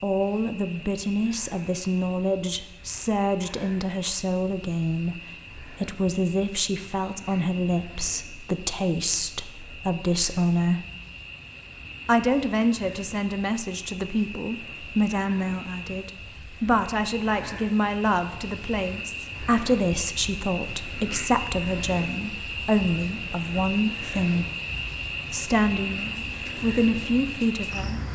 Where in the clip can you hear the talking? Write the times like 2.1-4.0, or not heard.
0.0-10.8, 12.1-24.4, 25.3-28.0.